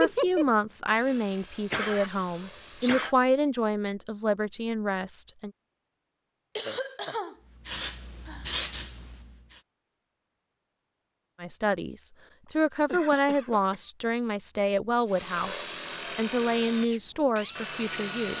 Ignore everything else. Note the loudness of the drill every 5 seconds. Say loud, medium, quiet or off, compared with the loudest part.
loud, off, off, loud.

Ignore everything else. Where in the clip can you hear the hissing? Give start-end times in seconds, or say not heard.
7.7-9.6.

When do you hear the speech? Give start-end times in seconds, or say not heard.
0.0-5.5, 11.4-18.3.